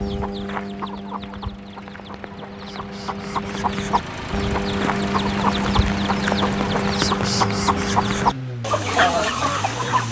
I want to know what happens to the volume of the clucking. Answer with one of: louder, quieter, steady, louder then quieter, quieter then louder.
louder.